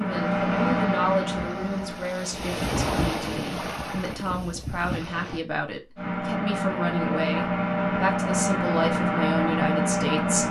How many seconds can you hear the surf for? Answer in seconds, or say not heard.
5 s.